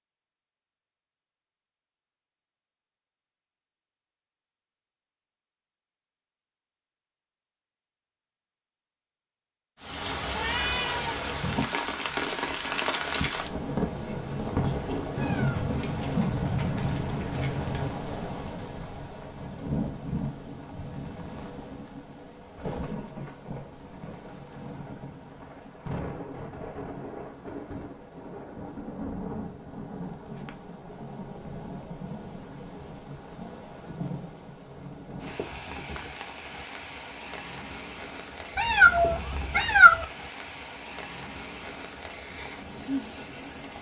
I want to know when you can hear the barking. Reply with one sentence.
The barking can't be heard in this clip.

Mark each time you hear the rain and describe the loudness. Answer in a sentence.
You can hear the rain from 9.8 to 43.7 s, getting quieter.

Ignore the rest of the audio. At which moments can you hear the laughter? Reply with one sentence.
The laughter can't be heard in this clip.